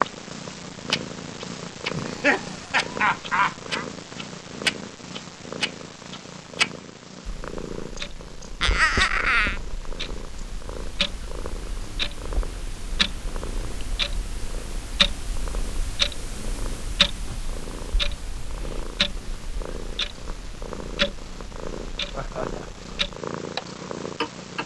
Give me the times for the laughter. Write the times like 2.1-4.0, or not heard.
1.9-3.9, 8.6-9.6, 22.1-22.8.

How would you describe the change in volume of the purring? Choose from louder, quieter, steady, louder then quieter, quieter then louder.
quieter then louder.